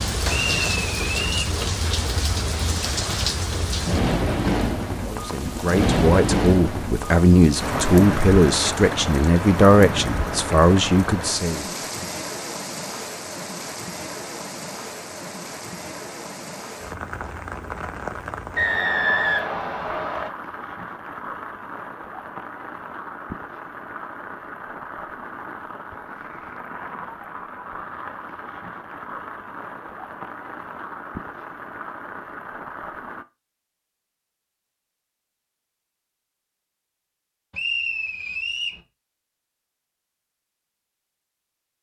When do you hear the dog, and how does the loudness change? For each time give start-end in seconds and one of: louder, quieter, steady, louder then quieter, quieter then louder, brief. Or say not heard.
not heard.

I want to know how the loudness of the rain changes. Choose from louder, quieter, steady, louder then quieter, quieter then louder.
quieter.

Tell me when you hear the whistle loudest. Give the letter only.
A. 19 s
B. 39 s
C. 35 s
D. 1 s
A.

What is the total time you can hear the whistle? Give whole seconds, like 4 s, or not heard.
4 s.